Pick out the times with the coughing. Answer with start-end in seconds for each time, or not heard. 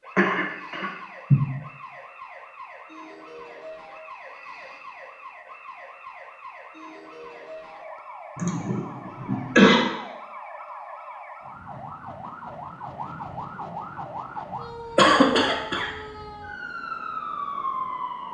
0.1-1.4, 8.3-9.8, 14.9-15.9.